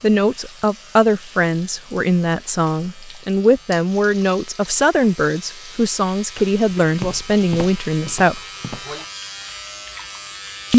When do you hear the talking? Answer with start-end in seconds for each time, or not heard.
0.0-8.4.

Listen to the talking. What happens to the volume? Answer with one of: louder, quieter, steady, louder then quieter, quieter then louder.
steady.